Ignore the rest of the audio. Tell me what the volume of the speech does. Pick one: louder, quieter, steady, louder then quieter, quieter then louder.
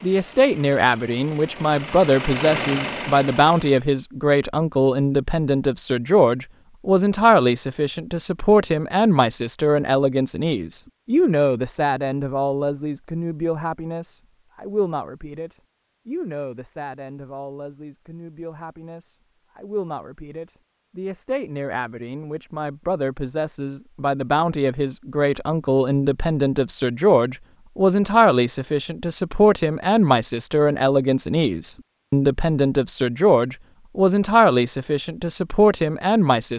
quieter then louder.